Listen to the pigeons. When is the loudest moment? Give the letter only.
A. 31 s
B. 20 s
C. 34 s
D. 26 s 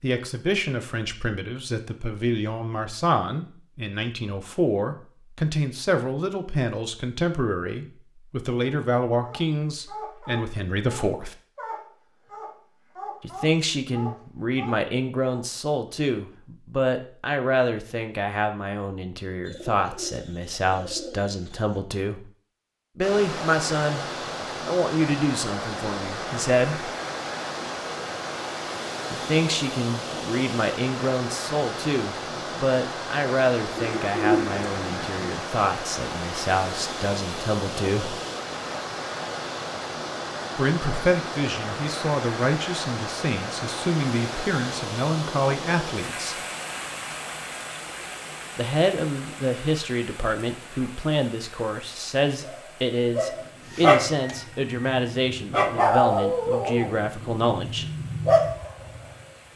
C.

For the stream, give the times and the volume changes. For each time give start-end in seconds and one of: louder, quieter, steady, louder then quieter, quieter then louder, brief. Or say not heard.
23.0-59.5 quieter.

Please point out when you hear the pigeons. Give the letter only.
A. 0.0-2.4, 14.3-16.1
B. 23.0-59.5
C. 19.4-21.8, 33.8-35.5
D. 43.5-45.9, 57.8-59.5
C.